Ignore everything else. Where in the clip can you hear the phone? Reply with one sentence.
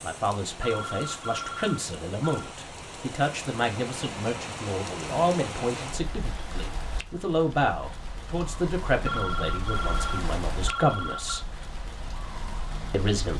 You can hear the phone from 0.5 to 2.5 s and from 8.8 to 11.4 s.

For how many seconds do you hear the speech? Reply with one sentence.
You can hear the speech for 12 seconds altogether.